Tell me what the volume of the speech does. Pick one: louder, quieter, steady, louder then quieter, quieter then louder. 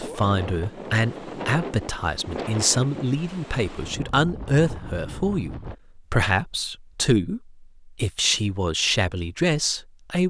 steady.